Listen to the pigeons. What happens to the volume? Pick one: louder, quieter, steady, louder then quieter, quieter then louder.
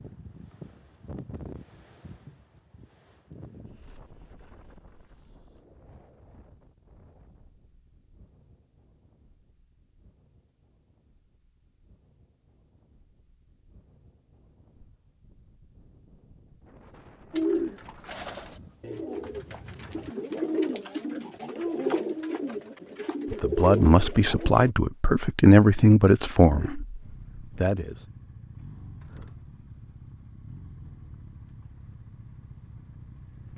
louder.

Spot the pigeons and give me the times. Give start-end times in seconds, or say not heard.
17.3-24.7.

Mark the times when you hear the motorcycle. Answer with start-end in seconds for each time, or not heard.
26.9-33.5.